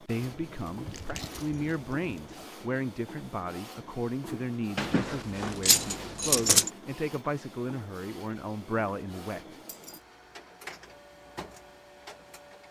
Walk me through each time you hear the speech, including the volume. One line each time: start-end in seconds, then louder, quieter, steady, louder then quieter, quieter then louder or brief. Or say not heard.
0.0-9.6 steady.